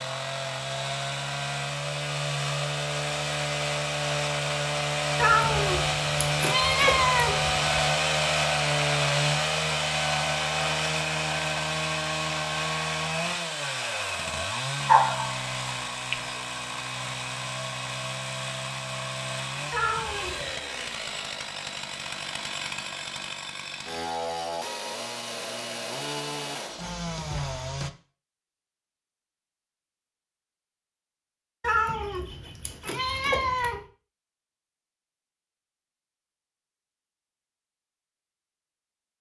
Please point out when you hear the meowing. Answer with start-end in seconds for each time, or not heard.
5.2-7.6, 19.7-20.6, 31.6-33.8.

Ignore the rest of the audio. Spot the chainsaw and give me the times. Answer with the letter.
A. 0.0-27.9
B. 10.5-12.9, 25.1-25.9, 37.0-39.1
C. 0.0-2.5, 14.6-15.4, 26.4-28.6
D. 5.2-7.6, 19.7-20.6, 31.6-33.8
A.